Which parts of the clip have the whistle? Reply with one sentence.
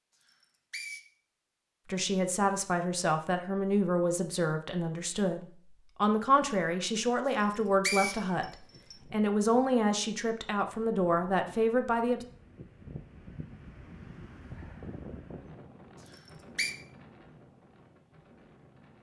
You can hear the whistle from 0.2 to 1.0 s, from 7.3 to 8.9 s and from 16.1 to 16.8 s.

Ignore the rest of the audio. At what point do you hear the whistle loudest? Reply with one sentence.
The loudest moment of the whistle is at 8 seconds.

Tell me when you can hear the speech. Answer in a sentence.
The speech can be heard from 1.9 to 12.2 s.